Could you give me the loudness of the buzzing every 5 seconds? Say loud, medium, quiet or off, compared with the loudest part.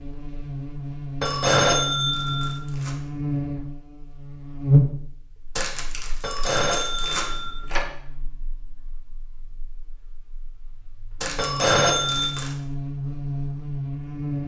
loud, quiet, medium.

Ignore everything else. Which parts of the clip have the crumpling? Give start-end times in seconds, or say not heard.
1.2-3.0, 5.5-7.3, 11.2-12.6.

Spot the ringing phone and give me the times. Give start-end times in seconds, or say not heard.
1.2-2.6, 6.2-7.8, 11.3-12.3.